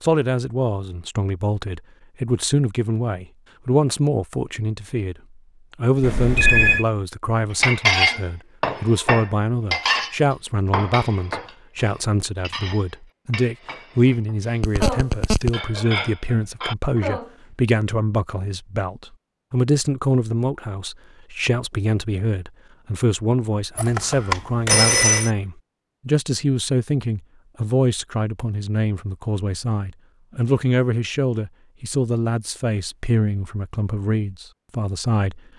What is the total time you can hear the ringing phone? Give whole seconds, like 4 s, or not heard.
3 s.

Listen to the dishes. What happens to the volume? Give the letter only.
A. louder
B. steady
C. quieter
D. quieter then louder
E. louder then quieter
D.